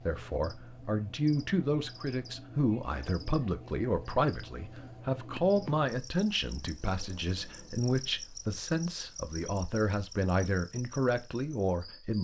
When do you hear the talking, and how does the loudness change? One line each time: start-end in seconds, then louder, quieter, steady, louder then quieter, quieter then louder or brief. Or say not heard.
0.1-12.1 steady.